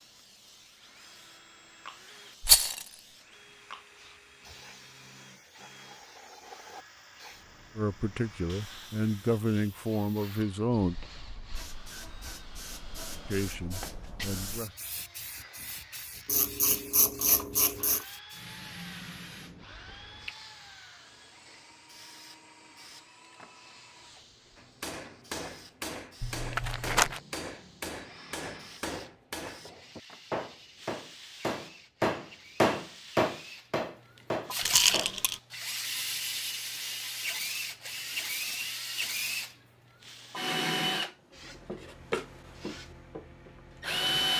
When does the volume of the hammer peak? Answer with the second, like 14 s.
33 s.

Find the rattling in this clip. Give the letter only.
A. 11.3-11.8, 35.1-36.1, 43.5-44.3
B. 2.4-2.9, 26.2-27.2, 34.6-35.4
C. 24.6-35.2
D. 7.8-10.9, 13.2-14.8
B.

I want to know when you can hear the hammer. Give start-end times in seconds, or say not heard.
24.6-35.2.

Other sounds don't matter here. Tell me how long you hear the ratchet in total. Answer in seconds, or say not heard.
2 s.